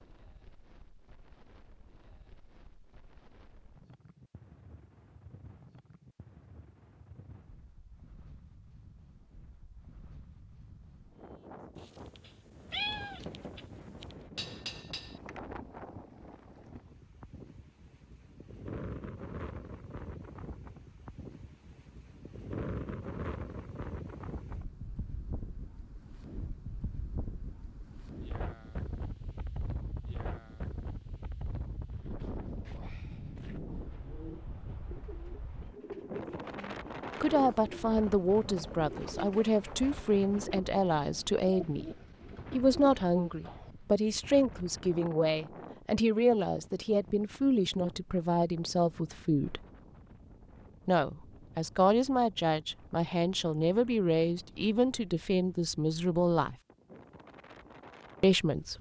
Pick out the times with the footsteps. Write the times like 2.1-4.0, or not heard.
not heard.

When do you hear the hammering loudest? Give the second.
15 s.